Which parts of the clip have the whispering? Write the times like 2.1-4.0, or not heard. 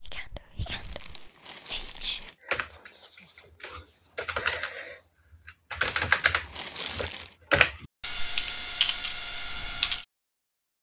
0.0-5.1.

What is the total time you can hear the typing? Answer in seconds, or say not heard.
8 s.